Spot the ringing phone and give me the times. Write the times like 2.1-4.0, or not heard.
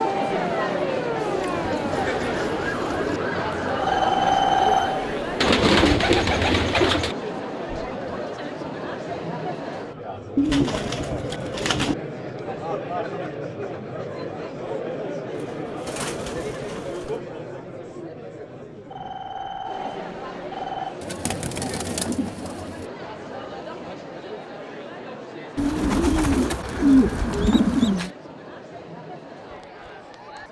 3.8-5.4, 18.9-20.9.